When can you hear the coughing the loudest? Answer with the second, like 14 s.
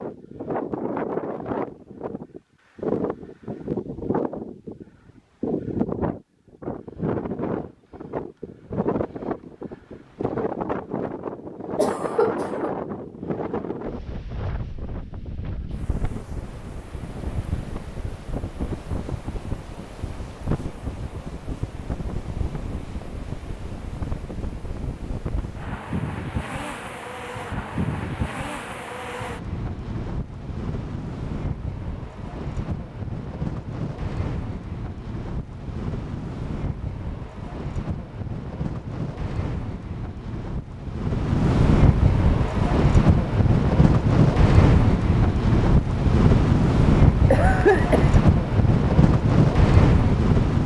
48 s.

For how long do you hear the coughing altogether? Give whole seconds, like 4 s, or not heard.
2 s.